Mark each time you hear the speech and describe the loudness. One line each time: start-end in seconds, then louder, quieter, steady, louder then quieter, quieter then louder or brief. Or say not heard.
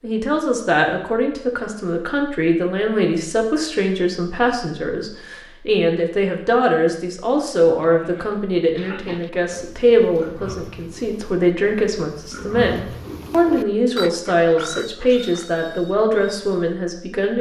0.0-17.3 steady.